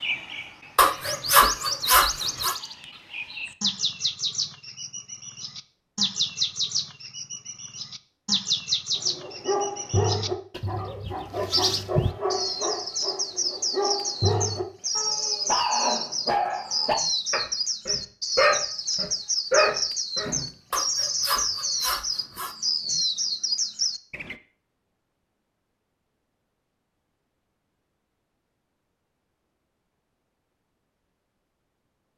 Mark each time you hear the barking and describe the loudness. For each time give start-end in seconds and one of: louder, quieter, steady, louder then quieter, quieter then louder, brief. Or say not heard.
9.1-20.4 louder.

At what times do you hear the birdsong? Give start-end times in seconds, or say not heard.
0.0-24.4.